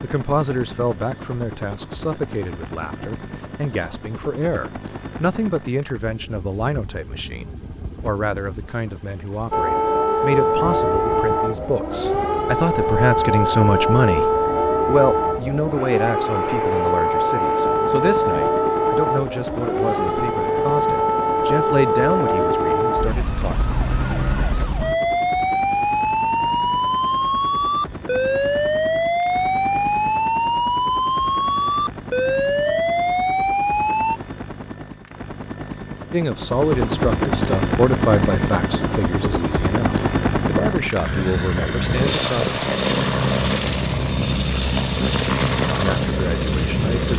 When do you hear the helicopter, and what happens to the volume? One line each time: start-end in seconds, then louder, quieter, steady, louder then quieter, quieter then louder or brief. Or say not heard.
0.0-47.1 louder.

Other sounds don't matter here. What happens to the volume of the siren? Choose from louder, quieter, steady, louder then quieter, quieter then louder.
steady.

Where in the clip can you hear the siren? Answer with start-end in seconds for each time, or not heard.
9.5-34.2.